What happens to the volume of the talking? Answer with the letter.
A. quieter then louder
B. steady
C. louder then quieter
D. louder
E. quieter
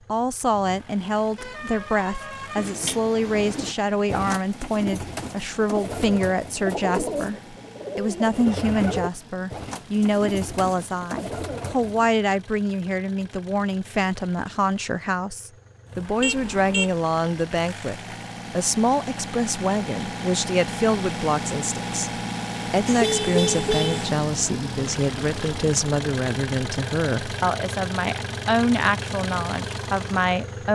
B.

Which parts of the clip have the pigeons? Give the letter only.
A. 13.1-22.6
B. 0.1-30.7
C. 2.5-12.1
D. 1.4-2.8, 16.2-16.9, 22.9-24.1
C.